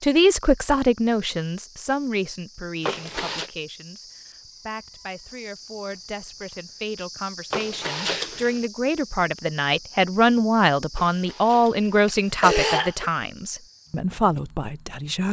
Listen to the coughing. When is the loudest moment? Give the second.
13 s.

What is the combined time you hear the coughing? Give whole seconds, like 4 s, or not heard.
4 s.